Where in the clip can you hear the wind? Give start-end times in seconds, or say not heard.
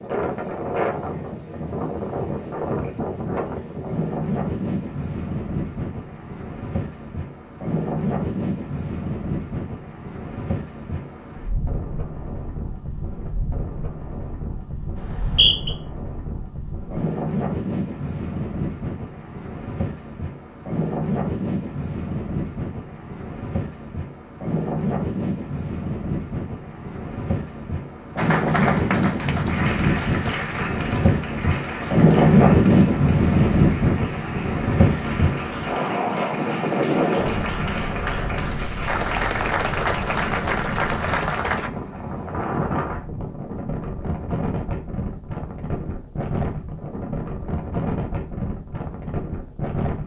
0.0-50.0.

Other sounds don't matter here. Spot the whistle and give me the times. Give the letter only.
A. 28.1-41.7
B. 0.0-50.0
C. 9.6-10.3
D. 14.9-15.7
D.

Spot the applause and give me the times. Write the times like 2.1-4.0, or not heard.
28.1-41.7.